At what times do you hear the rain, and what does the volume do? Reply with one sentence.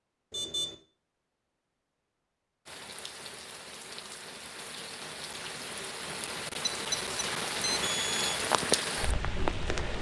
The rain can be heard from 2.6 to 9.9 s, getting louder.